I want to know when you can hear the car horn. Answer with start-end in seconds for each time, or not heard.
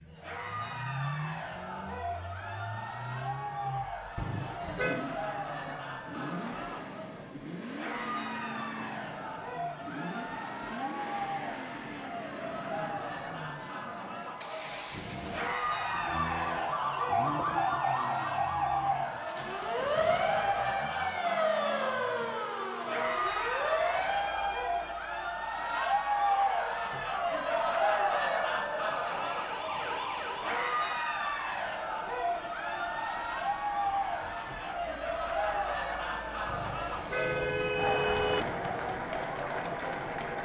4.2-5.0, 15.6-16.8, 36.5-38.5.